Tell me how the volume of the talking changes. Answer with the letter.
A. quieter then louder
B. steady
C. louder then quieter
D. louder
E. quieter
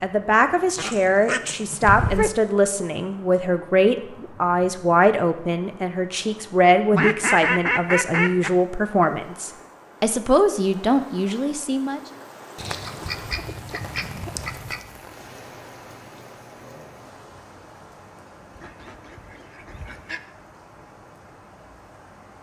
B.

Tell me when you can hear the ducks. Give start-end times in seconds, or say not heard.
0.8-2.3, 6.9-8.5, 12.6-14.8, 18.5-20.2.